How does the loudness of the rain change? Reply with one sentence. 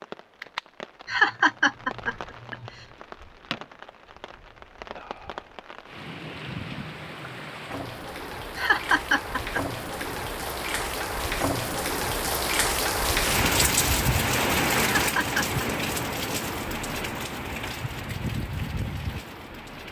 The volume of the rain goes up, then down.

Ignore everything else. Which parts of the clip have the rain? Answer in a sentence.
The rain can be heard from 0.0 to 19.8 s.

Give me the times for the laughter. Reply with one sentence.
The laughter can be heard from 1.1 to 2.7 s, from 8.6 to 10.2 s and from 14.8 to 15.7 s.